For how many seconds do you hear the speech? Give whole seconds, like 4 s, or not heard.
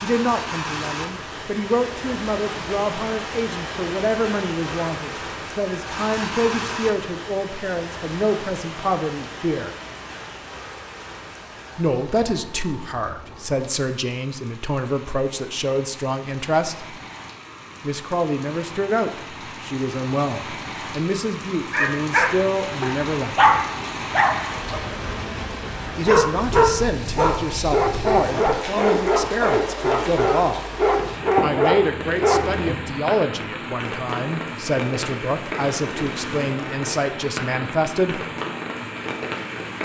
32 s.